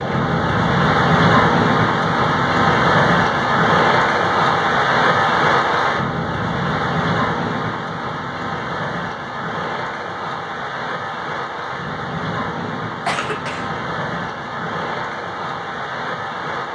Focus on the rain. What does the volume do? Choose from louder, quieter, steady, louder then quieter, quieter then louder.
quieter.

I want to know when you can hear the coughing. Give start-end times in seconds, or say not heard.
13.1-13.7.